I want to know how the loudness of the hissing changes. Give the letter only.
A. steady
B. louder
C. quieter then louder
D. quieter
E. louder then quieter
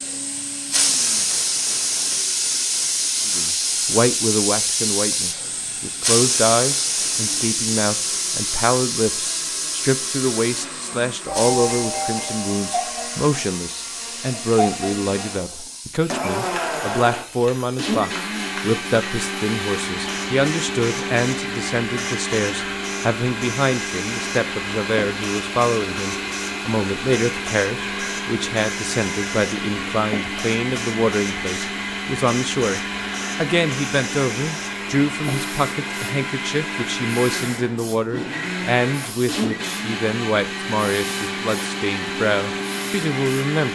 D.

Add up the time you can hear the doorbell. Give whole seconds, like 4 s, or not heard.
2 s.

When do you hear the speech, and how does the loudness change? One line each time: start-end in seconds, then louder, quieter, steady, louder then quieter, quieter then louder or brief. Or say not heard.
3.2-43.7 steady.